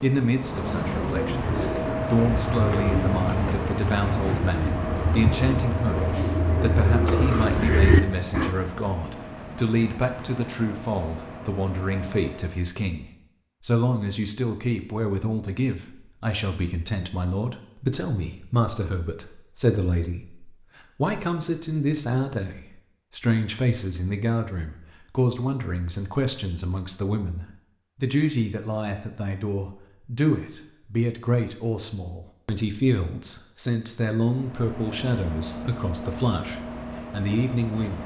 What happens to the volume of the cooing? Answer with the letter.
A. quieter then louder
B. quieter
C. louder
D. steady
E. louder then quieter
C.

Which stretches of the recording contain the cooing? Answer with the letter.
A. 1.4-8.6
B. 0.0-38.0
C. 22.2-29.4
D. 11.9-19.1
A.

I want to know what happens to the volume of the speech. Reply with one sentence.
The loudness of the speech stays about the same.